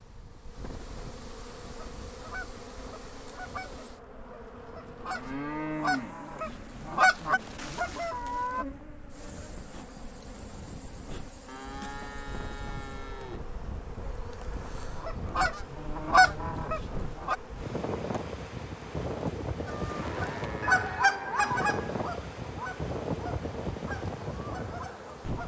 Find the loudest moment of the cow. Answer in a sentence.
The volume of the cow peaks at 6 seconds.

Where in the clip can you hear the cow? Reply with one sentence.
You can hear the cow from 5.1 to 6.2 s, from 11.4 to 13.4 s and from 19.9 to 21.6 s.